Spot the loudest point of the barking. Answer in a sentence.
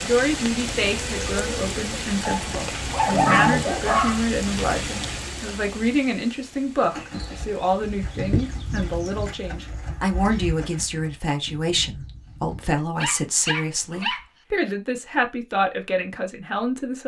The loudest moment of the barking is at 3 seconds.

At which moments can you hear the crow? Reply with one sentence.
The crow can't be heard in this clip.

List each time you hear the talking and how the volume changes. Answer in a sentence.
You can hear the talking from 0.0 to 17.0 s, at a steady volume.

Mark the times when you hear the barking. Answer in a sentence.
You can hear the barking from 2.2 to 4.2 s and from 13.0 to 14.8 s.